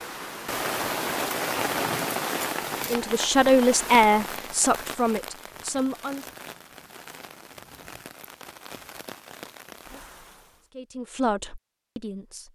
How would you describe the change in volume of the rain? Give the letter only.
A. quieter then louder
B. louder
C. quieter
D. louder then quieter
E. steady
C.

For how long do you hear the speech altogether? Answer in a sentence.
You can hear the speech for 5 seconds altogether.